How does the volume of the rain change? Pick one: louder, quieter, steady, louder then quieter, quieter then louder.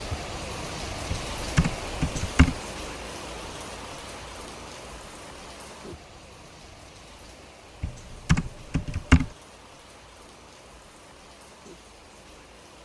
quieter.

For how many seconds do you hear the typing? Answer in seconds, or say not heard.
3 s.